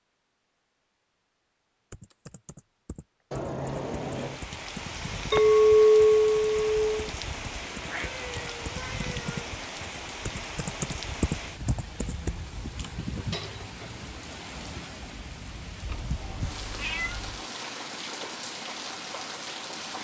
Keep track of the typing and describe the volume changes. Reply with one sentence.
The loudness of the typing goes up.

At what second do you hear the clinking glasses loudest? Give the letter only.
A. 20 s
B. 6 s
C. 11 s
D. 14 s
B.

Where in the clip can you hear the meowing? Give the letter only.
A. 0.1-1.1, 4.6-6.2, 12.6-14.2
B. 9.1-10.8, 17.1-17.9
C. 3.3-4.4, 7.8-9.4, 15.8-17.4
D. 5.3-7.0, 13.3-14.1
C.